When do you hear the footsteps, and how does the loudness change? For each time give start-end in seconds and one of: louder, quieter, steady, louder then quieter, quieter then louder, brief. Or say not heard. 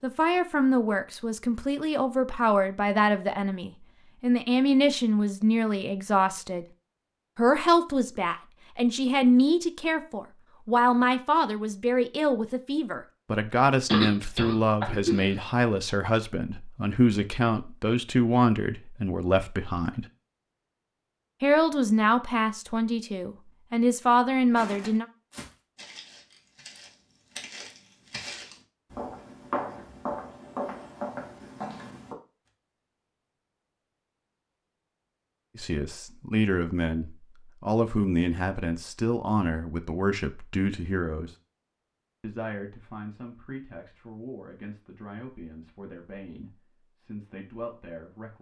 24.6-32.1 louder.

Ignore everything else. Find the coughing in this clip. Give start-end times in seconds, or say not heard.
13.8-15.3.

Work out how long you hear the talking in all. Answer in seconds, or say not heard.
35 s.